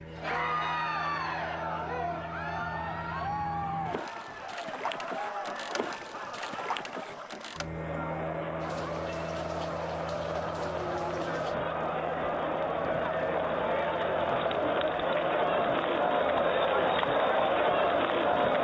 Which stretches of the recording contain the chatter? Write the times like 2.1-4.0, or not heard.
0.1-18.5.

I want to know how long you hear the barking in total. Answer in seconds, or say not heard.
not heard.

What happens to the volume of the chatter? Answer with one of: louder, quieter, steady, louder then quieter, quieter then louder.
quieter then louder.